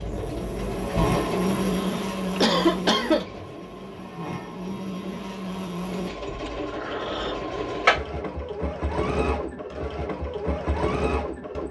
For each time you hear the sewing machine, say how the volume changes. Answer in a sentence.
The sewing machine can be heard from 0.0 to 11.6 s, getting quieter then louder.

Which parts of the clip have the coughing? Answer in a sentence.
The coughing can be heard from 1.7 to 3.2 s and from 6.5 to 7.4 s.